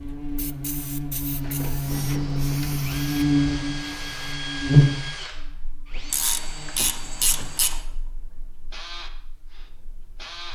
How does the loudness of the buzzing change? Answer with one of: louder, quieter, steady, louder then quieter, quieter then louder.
louder then quieter.